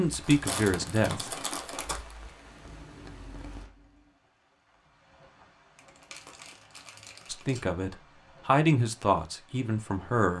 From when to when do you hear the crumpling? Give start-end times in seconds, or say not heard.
0.2-2.1, 5.8-7.7.